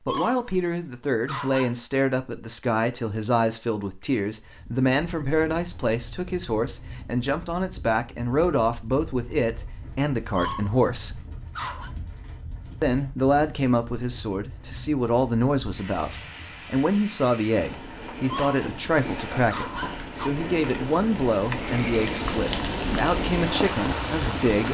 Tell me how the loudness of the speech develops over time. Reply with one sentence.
The volume of the speech stays about the same.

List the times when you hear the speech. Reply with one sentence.
The speech can be heard from 0.1 to 11.2 s and from 12.8 to 24.6 s.